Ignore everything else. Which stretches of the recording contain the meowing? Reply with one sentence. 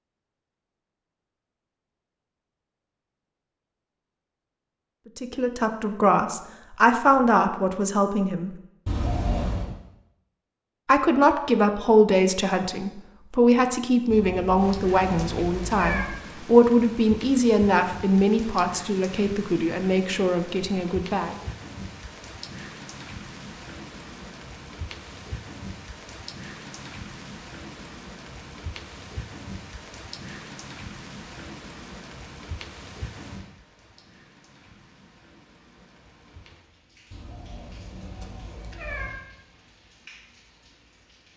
You can hear the meowing from 8.8 to 9.8 s, from 14.1 to 16.1 s and from 37.1 to 39.1 s.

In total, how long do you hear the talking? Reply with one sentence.
You can hear the talking for 14 seconds altogether.